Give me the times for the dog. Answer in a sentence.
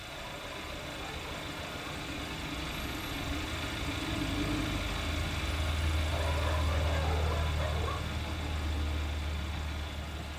You can hear the dog from 0.1 to 1.9 s and from 6.1 to 8.1 s.